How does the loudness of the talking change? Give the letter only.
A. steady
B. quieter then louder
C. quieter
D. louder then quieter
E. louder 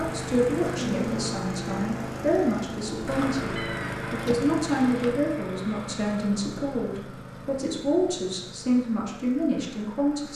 A.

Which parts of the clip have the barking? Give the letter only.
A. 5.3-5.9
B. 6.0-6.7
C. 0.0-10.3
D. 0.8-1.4
D.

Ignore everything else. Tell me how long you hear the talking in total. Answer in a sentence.
The talking can be heard for 10 seconds in total.